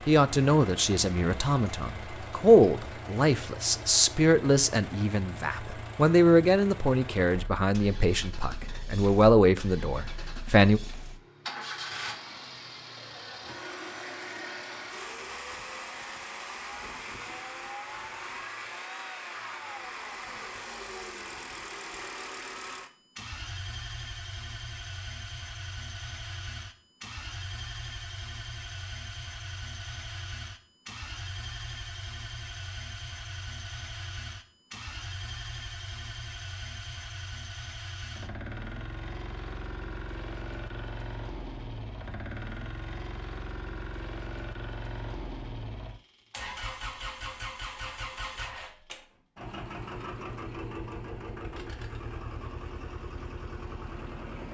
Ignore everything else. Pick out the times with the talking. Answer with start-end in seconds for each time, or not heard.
0.1-10.8.